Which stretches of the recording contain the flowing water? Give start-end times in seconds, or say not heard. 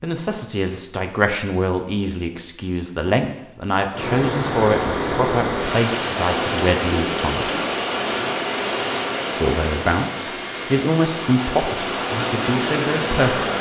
3.9-13.5.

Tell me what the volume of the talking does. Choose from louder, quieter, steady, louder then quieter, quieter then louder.
steady.